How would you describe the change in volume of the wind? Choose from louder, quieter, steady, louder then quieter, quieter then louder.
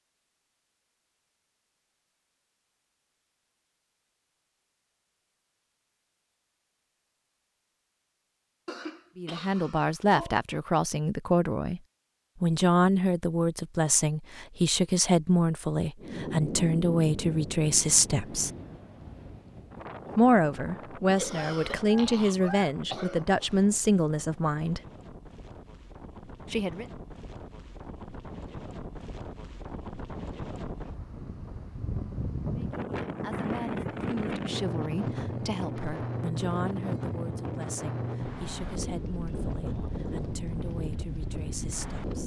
quieter then louder.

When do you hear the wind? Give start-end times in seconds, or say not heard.
15.9-42.2.